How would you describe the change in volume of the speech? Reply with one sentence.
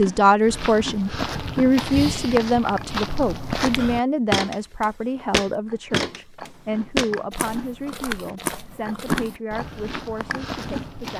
The loudness of the speech goes down.